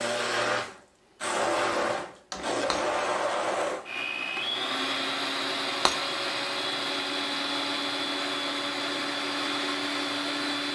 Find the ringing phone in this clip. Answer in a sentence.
You can't hear the ringing phone here.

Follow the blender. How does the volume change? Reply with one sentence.
The volume of the blender stays about the same.